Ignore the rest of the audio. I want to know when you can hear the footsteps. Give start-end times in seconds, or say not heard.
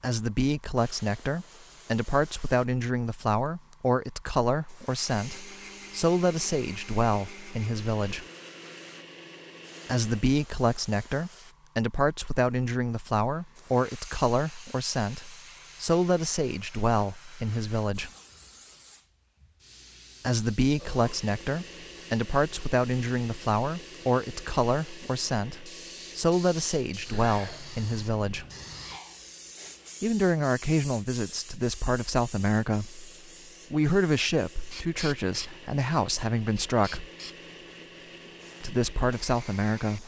not heard.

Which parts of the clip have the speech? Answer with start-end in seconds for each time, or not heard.
0.0-8.2, 9.8-18.1, 20.2-28.4, 30.0-33.1, 33.7-37.0, 38.6-40.0.